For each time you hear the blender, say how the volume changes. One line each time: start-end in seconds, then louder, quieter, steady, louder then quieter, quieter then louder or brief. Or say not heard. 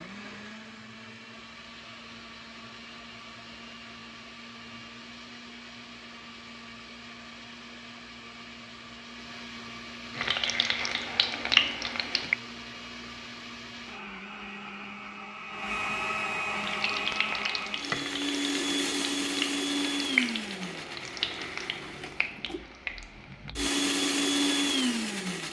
0.0-25.4 louder.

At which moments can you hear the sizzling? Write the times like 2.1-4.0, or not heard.
10.1-12.3, 16.6-23.6.